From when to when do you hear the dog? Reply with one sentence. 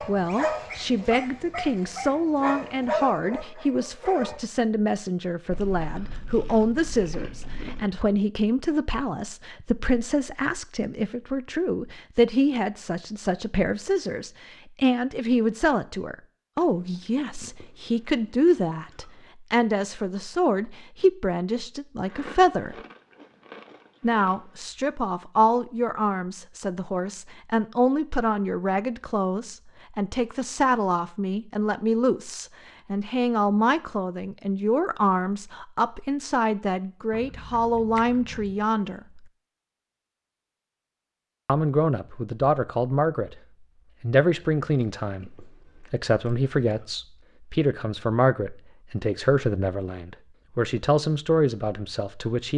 You can hear the dog from 0.0 to 4.4 s.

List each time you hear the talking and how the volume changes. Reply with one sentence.
You can hear the talking from 0.1 to 22.8 s, at a steady volume; from 24.0 to 39.2 s, at a steady volume; briefly from 41.5 to 43.4 s; and from 44.0 to 52.5 s, at a steady volume.